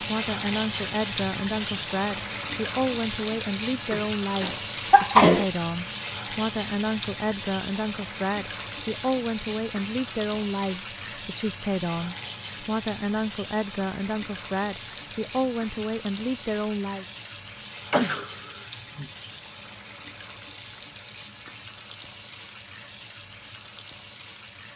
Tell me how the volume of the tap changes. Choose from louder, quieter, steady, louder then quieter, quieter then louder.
quieter.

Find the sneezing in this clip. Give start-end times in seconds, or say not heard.
3.9-5.5, 17.9-19.1.